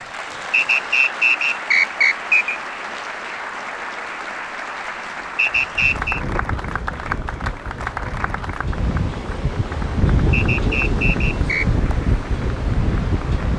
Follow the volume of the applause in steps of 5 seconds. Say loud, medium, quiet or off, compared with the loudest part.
loud, loud, medium.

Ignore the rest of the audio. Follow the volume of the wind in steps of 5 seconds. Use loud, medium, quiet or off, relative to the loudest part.
off, medium, loud.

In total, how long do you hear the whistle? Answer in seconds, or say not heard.
4 s.